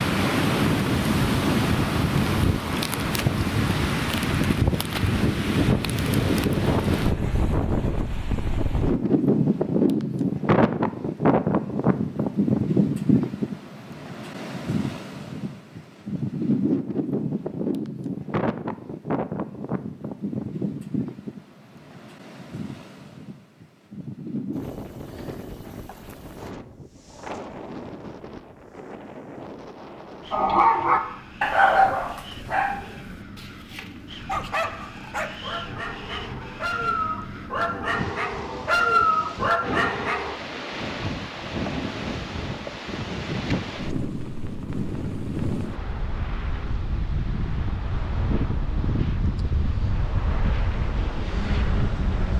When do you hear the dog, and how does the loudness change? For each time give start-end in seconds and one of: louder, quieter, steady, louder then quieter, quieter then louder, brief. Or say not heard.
30.3-40.4 quieter then louder.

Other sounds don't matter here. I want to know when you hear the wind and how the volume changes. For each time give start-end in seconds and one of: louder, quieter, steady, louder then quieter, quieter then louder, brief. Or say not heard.
0.0-52.3 quieter then louder.